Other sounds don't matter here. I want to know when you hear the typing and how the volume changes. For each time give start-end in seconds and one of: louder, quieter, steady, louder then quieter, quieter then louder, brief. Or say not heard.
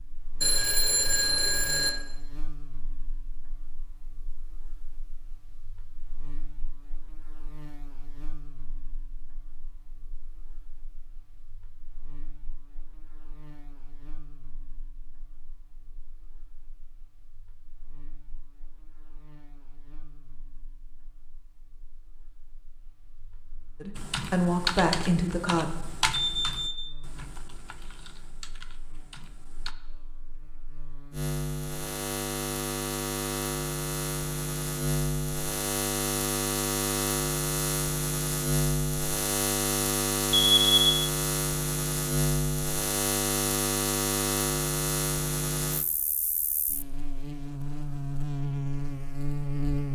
23.9-29.8 quieter.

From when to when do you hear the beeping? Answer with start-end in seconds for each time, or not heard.
0.4-1.9, 26.1-26.9, 40.3-41.0.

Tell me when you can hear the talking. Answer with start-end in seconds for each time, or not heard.
23.8-25.6.